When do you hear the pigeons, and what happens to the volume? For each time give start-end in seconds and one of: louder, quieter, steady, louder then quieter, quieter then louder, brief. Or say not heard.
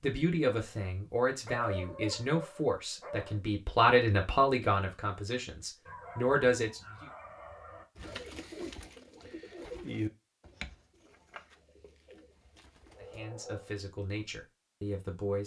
8.0-13.2 louder then quieter.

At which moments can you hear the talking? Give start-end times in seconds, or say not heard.
0.0-7.1, 13.2-15.4.